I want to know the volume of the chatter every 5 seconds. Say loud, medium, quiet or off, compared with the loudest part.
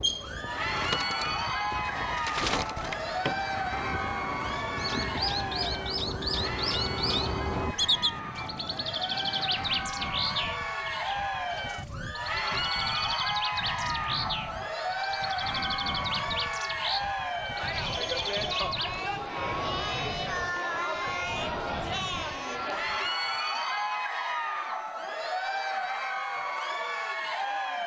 loud, medium, loud, loud, loud, loud.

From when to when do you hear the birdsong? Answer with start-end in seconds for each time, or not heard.
0.0-18.9.